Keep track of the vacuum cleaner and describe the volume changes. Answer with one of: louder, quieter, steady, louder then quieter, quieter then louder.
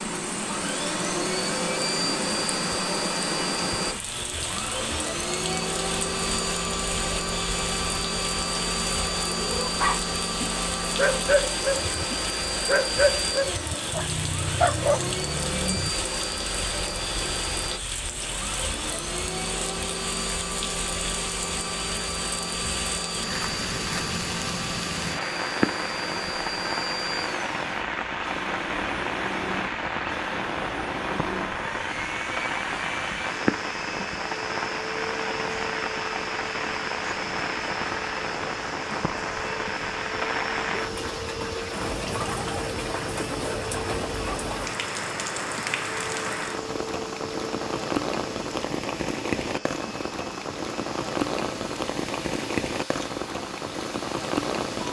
quieter.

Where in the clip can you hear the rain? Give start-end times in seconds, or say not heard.
0.0-54.8.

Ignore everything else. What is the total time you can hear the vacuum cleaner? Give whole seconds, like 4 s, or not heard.
55 s.